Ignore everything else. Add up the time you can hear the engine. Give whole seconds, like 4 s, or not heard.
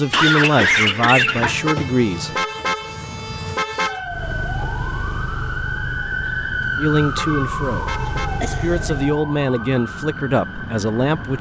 5 s.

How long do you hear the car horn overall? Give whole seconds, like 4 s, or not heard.
4 s.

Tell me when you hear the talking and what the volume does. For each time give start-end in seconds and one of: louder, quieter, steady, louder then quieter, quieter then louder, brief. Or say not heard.
0.0-2.3 brief
6.8-11.3 quieter then louder.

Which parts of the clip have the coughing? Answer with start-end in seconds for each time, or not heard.
0.1-1.9, 8.1-8.8.